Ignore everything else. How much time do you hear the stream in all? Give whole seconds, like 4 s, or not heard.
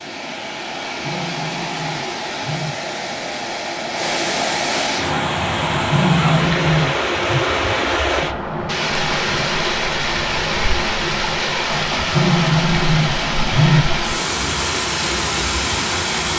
16 s.